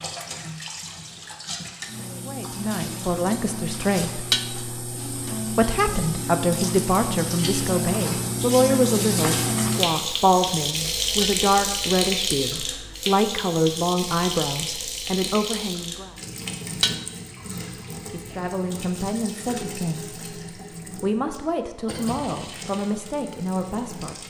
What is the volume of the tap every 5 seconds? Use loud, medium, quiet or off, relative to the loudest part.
medium, loud, loud, medium, quiet.